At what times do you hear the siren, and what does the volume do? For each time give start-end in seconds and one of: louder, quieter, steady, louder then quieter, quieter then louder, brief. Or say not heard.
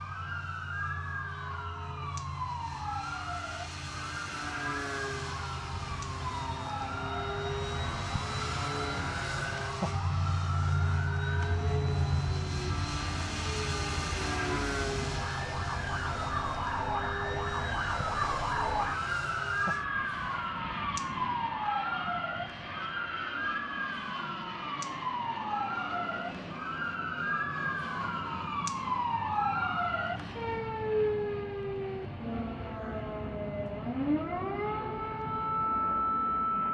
0.0-36.6 louder.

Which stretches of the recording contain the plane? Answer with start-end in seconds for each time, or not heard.
0.0-36.6.